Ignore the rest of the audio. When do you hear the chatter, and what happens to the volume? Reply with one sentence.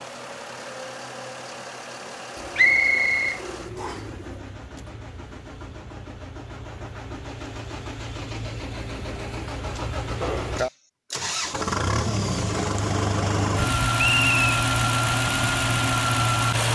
You can't hear the chatter here.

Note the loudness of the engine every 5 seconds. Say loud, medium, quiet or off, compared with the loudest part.
quiet, quiet, loud, loud.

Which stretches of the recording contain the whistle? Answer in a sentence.
You can hear the whistle from 2.5 to 4.0 s and from 13.9 to 14.4 s.